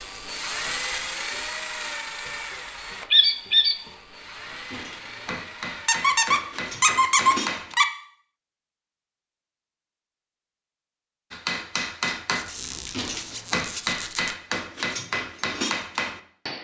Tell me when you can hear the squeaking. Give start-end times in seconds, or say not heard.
3.1-3.8, 5.8-7.8, 12.3-14.3.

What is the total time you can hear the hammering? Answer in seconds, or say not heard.
9 s.